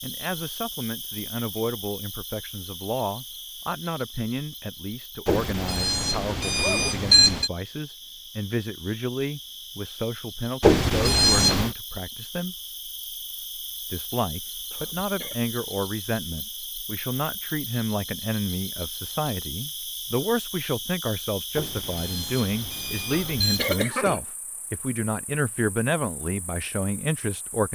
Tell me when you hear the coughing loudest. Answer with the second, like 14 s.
24 s.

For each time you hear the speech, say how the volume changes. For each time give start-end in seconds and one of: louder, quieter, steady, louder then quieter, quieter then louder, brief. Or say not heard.
0.0-12.6 steady
13.9-27.7 steady.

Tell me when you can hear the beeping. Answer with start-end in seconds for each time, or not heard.
5.2-7.5, 10.6-11.7, 21.6-23.8.